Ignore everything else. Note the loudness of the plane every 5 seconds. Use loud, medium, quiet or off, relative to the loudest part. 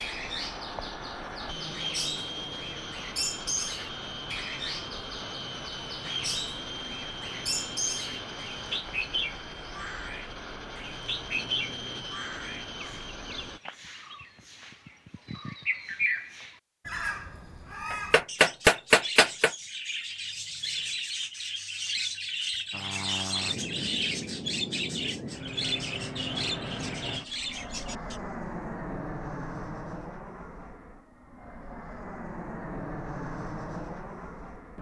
loud, loud, loud, off, loud, loud, loud.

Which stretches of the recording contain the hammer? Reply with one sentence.
You can hear the hammer from 17.9 to 19.5 s.